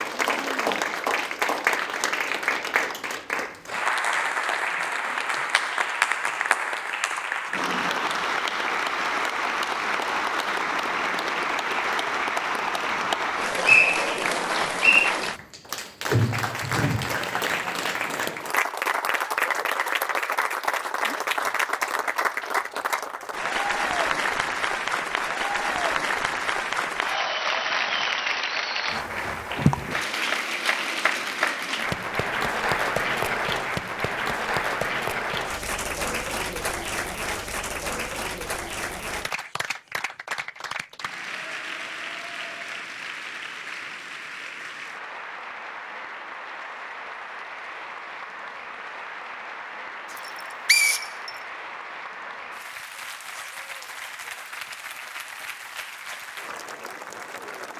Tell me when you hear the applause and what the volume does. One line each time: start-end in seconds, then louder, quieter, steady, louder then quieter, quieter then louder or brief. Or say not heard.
0.0-57.7 quieter.